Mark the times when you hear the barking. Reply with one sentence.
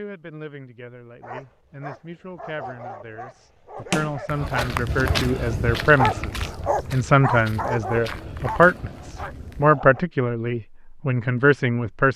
You can hear the barking from 1.2 to 10.1 s.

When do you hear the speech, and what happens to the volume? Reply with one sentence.
The speech can be heard from 0.0 to 12.1 s, getting louder.